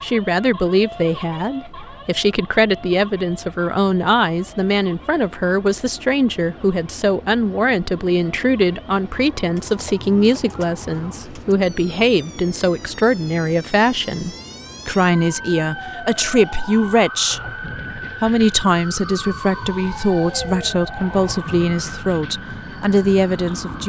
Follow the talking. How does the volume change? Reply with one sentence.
The volume of the talking stays about the same.